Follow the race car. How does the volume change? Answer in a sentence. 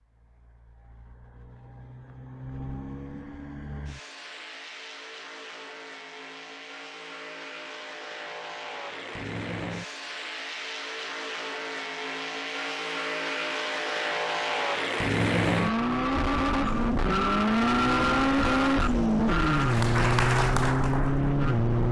The volume of the race car goes up.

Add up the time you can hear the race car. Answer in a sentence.
The race car can be heard for 22 seconds in total.